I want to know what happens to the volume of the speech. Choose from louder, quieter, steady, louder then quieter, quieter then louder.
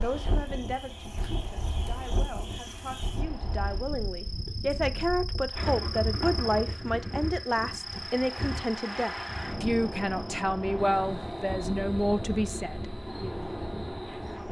louder.